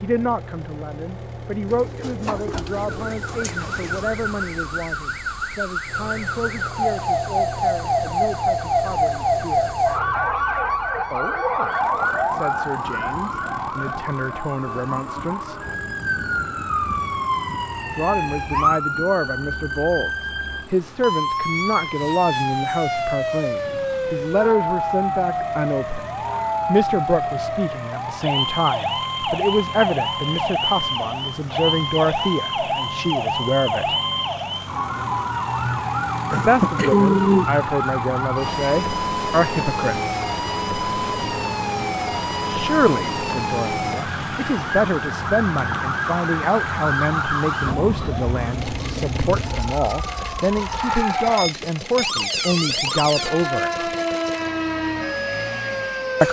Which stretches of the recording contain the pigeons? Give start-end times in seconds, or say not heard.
1.7-4.0, 36.3-37.5.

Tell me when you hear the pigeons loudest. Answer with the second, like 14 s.
37 s.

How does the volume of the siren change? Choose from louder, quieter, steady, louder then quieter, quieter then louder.
steady.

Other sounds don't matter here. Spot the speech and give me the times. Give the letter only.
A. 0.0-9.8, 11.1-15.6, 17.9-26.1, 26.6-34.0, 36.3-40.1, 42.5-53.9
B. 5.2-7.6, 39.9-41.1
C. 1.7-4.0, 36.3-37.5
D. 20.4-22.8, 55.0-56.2
A.